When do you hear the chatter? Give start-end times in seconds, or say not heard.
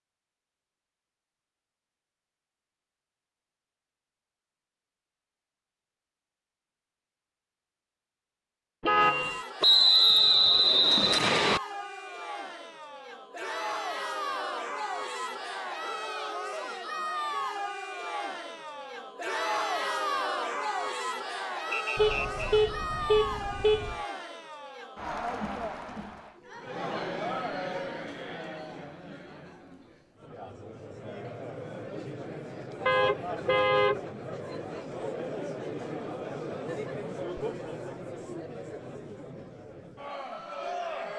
9.0-41.1.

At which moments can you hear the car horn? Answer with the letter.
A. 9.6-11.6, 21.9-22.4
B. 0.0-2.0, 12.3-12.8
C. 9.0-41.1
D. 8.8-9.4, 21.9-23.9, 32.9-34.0
D.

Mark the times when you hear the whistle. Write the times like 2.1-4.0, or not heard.
9.6-11.6, 21.9-22.4.